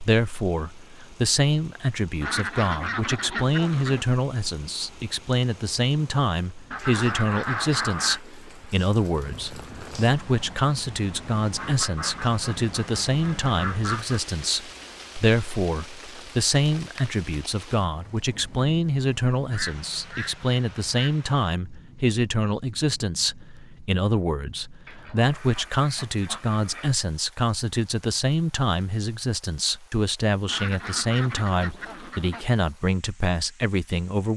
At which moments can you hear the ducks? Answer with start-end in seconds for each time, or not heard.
2.2-4.0, 6.7-8.2, 11.6-14.2, 19.5-21.2, 24.9-26.9, 30.4-32.5.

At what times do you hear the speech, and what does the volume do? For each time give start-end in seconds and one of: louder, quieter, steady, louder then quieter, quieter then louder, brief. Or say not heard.
0.0-34.3 steady.